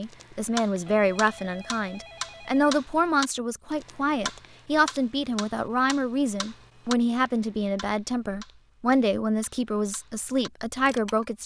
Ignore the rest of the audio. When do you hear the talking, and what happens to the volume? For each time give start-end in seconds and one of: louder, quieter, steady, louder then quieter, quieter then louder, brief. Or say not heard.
0.0-11.4 steady.